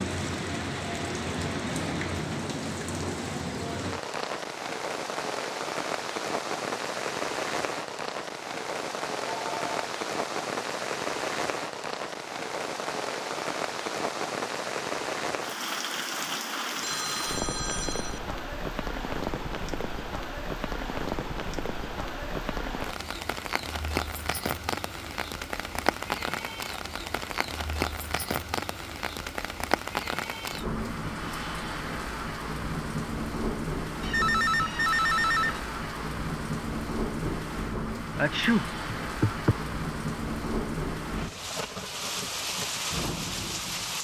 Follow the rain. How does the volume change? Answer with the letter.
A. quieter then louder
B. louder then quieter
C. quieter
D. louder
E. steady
E.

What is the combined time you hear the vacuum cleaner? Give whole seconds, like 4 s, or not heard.
2 s.